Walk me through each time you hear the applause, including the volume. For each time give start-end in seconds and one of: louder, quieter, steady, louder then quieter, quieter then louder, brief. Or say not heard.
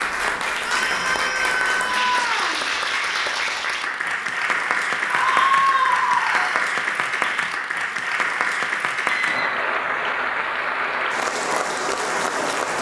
0.0-12.7 steady.